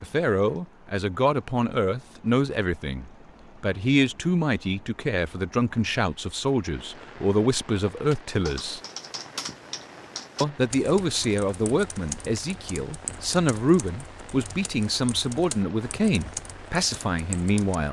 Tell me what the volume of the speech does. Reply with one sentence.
The volume of the speech stays about the same.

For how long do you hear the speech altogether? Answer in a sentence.
The speech can be heard for 16 seconds in total.